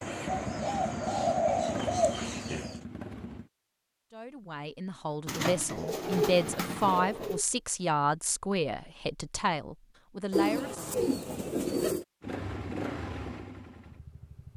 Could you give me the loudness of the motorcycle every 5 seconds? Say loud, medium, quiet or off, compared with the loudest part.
loud, off, loud.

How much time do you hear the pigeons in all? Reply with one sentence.
You can hear the pigeons for 7 seconds altogether.